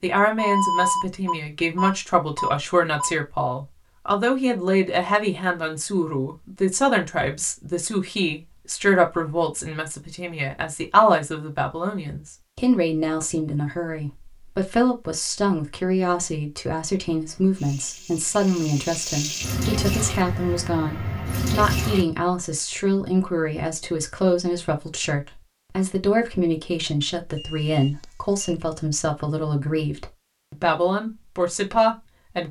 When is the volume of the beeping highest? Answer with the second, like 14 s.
1 s.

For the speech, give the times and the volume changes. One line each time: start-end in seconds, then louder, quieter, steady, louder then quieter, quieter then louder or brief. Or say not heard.
0.0-32.4 steady.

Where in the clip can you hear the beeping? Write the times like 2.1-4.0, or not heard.
0.3-3.1, 27.4-28.6.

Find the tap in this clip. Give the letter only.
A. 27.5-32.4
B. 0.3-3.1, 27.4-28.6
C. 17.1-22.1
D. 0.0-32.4
C.